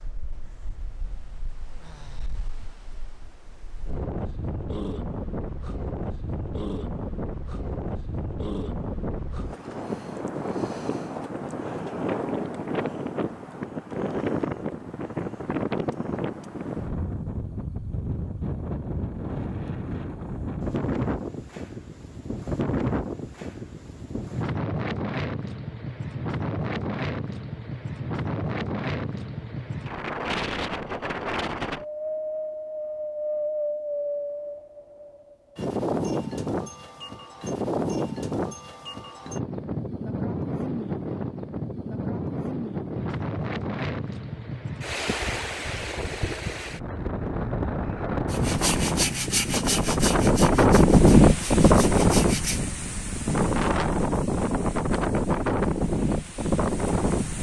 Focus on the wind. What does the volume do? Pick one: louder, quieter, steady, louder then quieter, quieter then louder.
louder.